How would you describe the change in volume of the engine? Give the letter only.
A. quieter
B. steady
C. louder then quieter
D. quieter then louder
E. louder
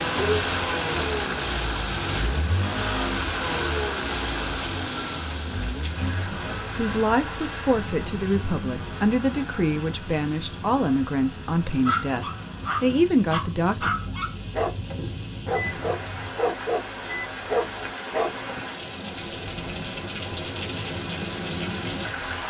A.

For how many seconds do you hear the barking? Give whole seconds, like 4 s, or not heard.
7 s.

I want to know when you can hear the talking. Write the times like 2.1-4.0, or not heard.
6.0-13.9.